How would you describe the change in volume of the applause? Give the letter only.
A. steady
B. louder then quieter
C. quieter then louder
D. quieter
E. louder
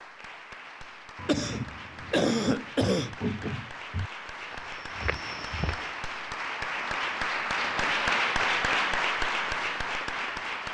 E.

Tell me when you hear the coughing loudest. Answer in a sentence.
The volume of the coughing peaks at 2 seconds.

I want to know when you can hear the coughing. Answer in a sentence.
You can hear the coughing from 1.1 to 3.6 s.